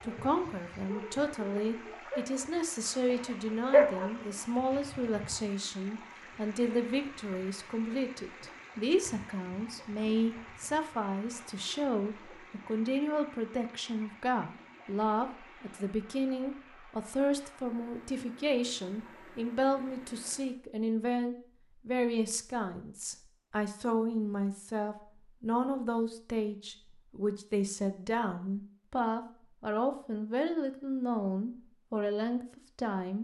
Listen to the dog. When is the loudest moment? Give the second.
4 s.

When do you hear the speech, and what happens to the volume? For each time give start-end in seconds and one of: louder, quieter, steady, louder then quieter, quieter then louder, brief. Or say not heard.
0.1-33.1 steady.